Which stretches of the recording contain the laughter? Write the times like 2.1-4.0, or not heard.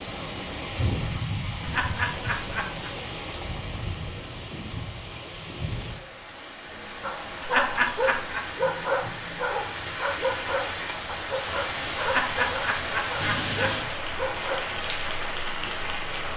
1.6-2.9, 7.4-8.4, 12.0-13.7.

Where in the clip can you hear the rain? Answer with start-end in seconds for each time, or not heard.
0.0-16.3.